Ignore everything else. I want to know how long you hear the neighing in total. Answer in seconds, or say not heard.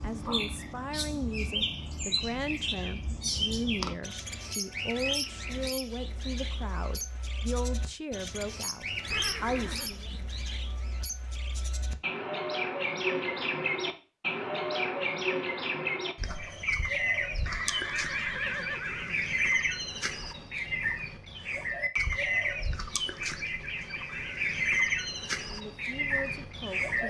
3 s.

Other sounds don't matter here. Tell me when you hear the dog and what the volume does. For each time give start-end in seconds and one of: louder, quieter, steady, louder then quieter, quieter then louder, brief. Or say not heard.
not heard.